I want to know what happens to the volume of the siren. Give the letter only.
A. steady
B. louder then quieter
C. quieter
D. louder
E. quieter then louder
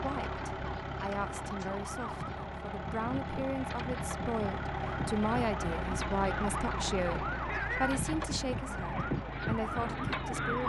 D.